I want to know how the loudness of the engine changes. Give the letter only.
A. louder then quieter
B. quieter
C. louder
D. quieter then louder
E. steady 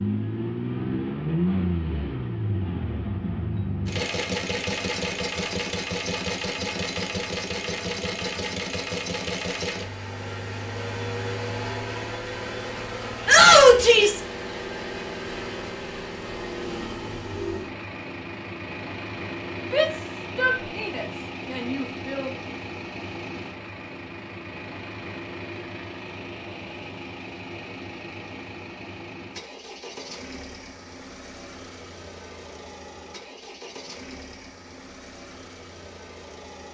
B.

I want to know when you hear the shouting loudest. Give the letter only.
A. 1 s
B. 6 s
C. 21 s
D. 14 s
D.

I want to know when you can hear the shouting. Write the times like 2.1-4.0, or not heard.
13.2-14.2, 19.7-22.3.